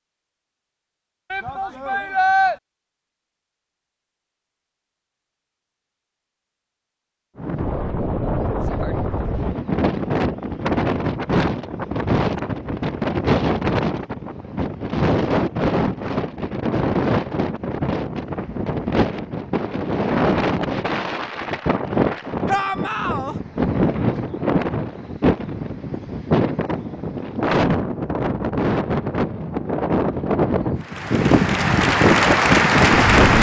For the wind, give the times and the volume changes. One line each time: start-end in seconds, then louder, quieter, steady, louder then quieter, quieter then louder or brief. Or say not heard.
7.3-33.3 steady.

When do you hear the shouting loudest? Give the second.
2 s.